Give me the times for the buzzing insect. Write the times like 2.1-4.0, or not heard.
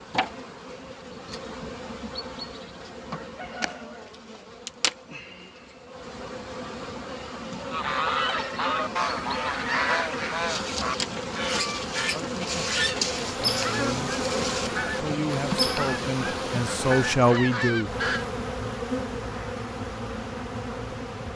0.0-21.3.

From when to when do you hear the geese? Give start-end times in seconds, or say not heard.
7.7-18.2.